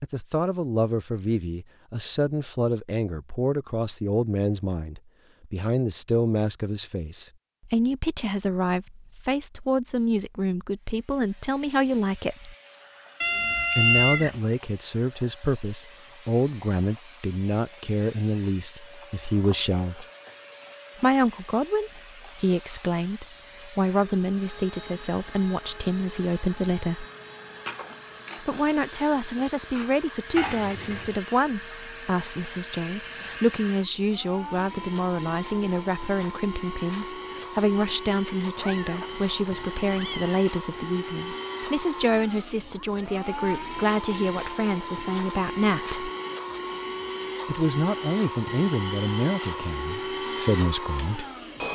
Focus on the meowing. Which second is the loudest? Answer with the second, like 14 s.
14 s.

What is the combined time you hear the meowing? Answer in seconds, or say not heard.
4 s.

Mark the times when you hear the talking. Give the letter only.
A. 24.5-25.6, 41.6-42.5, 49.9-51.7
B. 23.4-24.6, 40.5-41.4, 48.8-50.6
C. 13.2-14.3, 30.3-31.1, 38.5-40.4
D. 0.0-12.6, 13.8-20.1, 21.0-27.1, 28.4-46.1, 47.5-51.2
D.